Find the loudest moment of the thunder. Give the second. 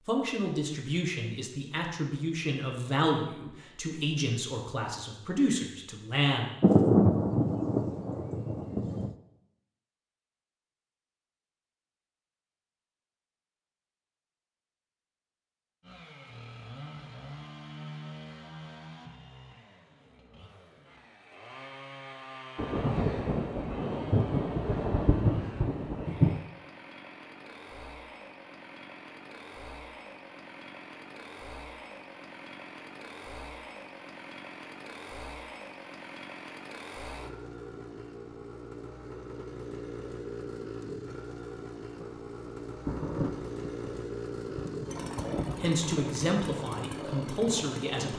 7 s.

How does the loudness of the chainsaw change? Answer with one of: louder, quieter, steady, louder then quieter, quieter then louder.
louder.